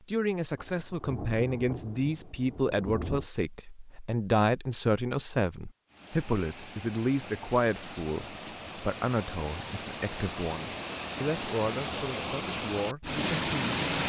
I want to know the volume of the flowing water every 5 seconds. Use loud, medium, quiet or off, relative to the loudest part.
off, medium, loud.